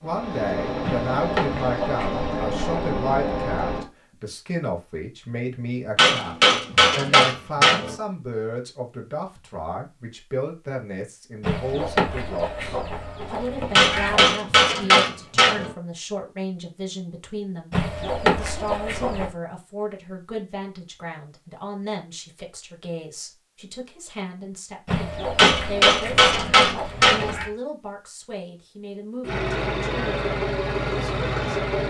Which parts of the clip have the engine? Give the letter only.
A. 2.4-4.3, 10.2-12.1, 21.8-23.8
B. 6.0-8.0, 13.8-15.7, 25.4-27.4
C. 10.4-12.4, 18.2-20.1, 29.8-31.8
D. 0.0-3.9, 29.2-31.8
D.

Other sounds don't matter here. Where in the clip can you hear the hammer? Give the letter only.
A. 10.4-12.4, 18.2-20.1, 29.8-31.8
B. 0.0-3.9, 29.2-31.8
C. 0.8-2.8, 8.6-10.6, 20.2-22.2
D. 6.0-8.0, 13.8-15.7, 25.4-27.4
D.